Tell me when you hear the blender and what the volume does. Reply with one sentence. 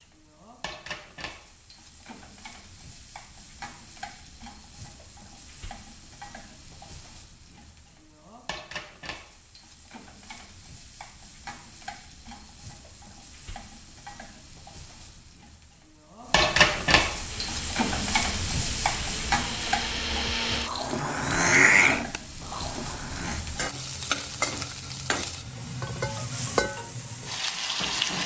The blender can be heard from 17.2 to 23.4 s, getting louder then quieter.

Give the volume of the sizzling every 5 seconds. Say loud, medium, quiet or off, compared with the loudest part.
quiet, quiet, quiet, loud, medium, loud.